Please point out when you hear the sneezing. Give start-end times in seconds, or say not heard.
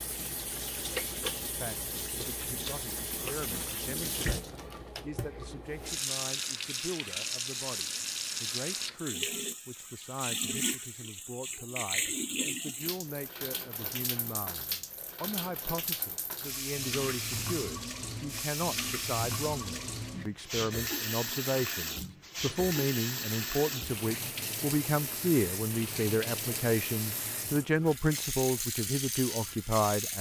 not heard.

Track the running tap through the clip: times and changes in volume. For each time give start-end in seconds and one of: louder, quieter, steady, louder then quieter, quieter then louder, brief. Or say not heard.
0.0-30.1 steady.